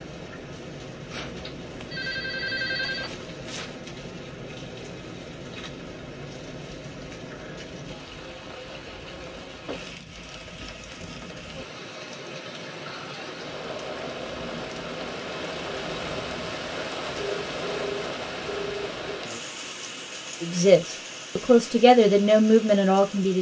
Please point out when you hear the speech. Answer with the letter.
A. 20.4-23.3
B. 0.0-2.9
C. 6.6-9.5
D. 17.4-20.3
A.